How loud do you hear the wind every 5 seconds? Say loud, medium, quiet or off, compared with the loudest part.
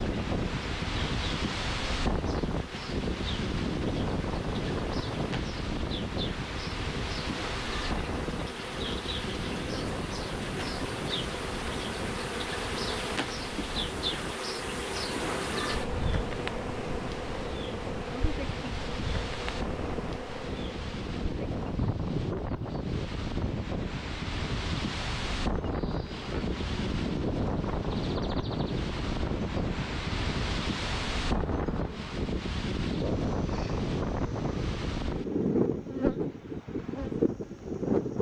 loud, medium, medium, medium, medium, loud, loud, loud.